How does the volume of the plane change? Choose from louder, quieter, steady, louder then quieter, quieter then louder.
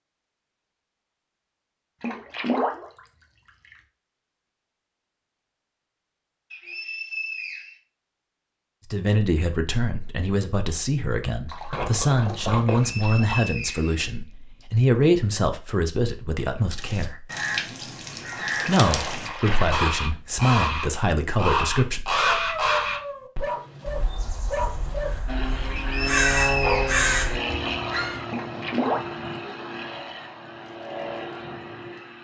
quieter.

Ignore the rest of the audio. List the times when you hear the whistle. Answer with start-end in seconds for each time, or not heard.
6.5-7.8, 12.7-14.7, 25.8-27.0.